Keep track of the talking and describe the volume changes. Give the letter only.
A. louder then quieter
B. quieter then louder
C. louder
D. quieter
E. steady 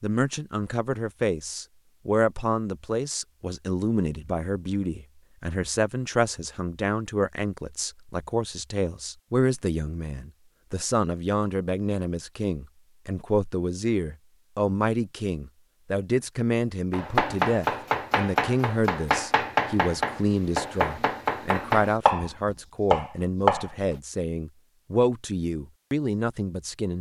E.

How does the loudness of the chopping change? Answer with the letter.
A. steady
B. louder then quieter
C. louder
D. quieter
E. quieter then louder
A.